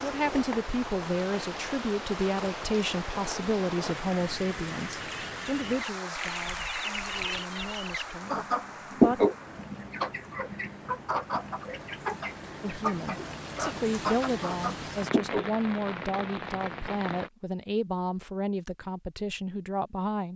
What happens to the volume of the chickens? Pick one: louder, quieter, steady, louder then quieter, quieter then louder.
louder then quieter.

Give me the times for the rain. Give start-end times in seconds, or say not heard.
0.0-17.3.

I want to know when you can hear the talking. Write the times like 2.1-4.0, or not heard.
0.0-9.2, 12.6-20.3.